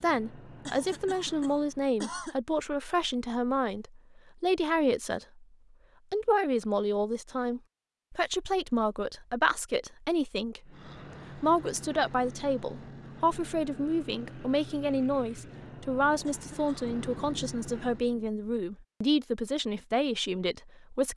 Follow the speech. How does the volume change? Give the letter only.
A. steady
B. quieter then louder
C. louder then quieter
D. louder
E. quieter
A.